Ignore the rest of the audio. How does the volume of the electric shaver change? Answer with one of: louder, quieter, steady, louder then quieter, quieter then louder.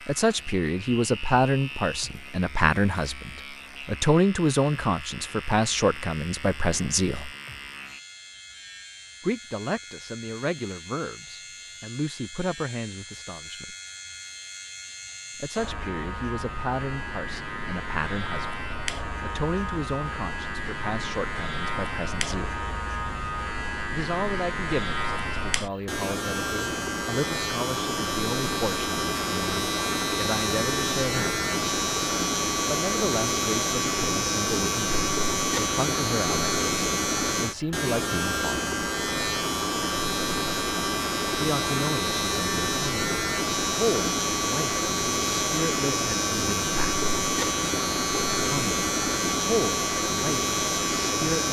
louder.